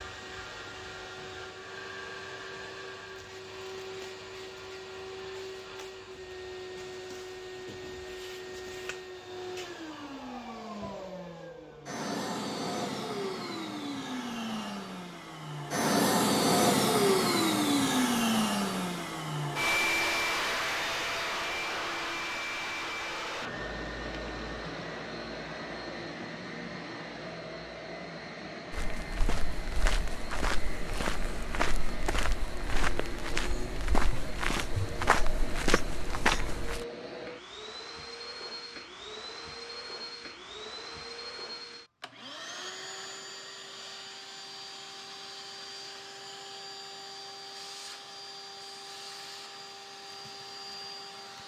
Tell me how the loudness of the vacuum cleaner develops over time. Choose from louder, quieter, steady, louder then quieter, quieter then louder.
louder then quieter.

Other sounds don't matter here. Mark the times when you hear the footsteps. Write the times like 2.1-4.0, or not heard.
28.7-36.9.